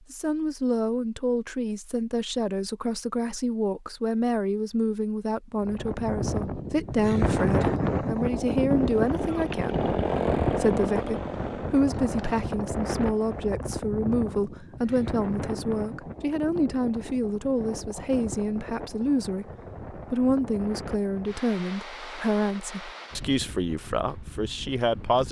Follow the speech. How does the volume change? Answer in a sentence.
The volume of the speech stays about the same.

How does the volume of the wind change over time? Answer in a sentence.
The volume of the wind goes down.